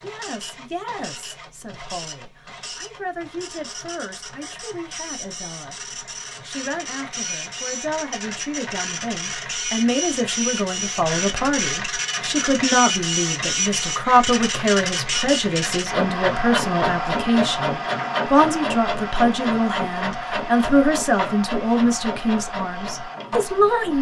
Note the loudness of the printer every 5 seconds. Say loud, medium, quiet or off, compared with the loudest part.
quiet, medium, loud, loud, medium.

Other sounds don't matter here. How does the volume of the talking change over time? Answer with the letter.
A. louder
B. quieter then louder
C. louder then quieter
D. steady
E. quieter
A.